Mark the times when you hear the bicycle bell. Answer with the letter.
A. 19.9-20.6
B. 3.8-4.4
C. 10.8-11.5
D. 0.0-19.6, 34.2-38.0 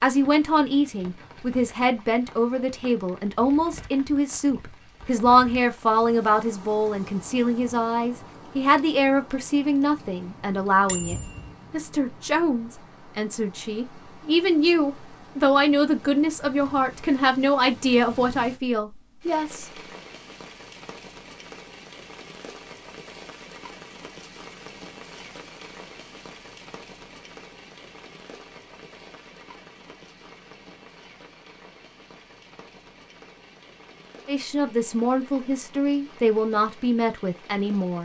C.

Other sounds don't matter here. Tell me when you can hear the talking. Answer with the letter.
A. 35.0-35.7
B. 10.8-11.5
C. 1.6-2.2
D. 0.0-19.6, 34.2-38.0
D.